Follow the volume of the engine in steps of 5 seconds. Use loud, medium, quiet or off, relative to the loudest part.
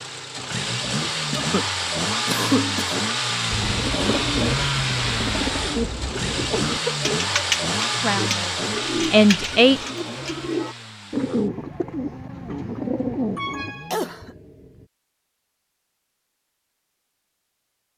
loud, loud, quiet, off.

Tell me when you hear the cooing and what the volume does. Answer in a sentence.
The cooing can be heard from 3.5 to 13.7 s, at a steady volume.